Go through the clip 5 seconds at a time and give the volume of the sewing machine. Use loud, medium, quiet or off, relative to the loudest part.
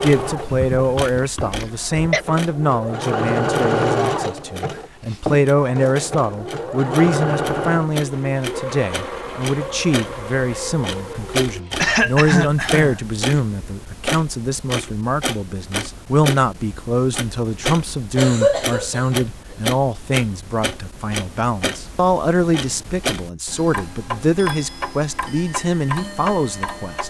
loud, loud, medium, off, off, off.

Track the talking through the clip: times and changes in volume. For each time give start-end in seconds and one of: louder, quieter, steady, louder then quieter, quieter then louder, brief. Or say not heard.
0.0-27.0 steady.